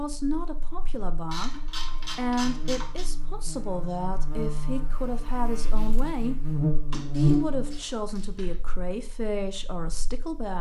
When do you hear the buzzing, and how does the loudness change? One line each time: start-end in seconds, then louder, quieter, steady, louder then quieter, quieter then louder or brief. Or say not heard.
0.0-10.5 louder then quieter.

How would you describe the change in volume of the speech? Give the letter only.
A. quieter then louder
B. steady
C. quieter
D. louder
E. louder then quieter
B.